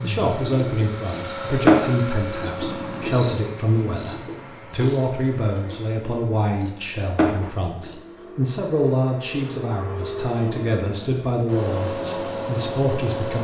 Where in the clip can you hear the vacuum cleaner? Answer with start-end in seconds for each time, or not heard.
0.0-13.3.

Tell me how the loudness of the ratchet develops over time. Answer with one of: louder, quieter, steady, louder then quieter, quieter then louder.
quieter then louder.